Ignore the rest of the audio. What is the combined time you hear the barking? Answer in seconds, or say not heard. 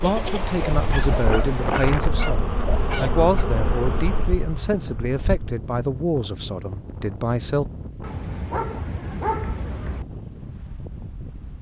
5 s.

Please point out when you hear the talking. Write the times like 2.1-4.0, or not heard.
0.0-7.7.